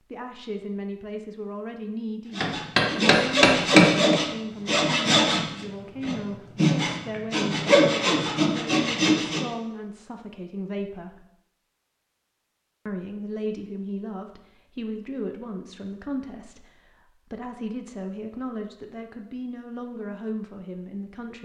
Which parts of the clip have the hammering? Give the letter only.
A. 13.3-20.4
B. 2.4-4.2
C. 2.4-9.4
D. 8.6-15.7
B.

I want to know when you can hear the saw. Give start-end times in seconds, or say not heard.
2.4-9.4.